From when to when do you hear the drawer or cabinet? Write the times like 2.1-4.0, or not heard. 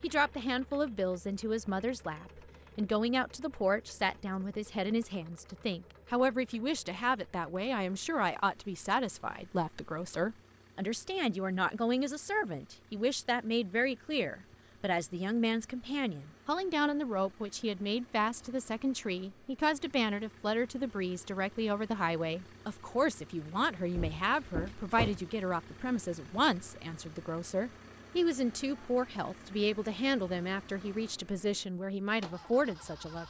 23.9-25.2.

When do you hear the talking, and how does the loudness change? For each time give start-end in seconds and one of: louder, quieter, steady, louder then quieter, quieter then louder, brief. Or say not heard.
0.0-33.2 steady.